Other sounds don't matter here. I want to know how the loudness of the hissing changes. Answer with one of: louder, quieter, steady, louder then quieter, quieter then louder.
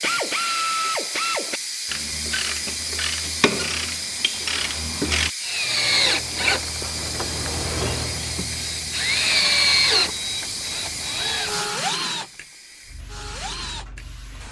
quieter.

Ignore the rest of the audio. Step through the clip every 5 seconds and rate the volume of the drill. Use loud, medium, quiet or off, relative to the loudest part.
off, loud, medium.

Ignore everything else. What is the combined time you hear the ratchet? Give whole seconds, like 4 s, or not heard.
5 s.